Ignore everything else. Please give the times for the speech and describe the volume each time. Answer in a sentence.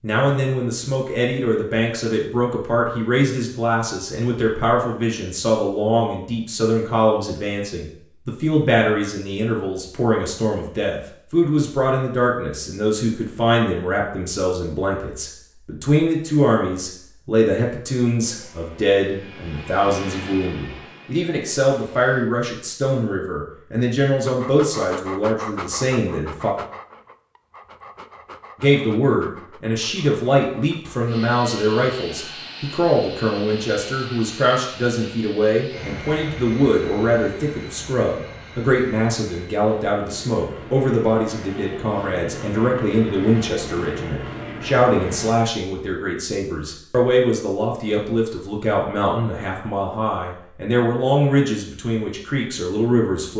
You can hear the speech from 0.0 to 26.6 s, at a steady volume; and from 28.6 to 53.3 s, at a steady volume.